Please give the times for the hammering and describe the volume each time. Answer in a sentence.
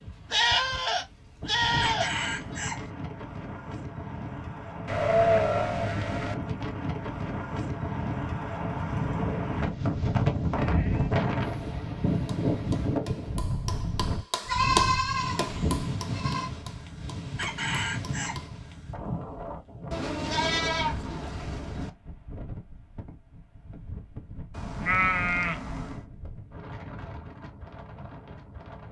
You can hear the hammering from 12.2 to 18.6 s, getting louder then quieter.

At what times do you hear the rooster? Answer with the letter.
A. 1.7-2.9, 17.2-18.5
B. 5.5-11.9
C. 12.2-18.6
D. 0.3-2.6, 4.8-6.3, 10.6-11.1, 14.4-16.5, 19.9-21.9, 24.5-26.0
A.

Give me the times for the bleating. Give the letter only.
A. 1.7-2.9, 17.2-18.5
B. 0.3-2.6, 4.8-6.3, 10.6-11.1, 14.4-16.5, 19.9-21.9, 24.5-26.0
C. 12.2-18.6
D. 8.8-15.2
B.